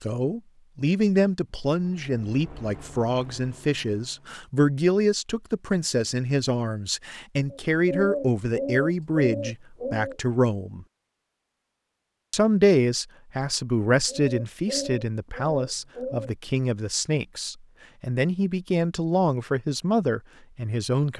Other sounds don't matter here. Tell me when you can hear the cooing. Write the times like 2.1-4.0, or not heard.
7.5-10.2, 14.1-16.4.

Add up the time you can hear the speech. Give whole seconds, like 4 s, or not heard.
20 s.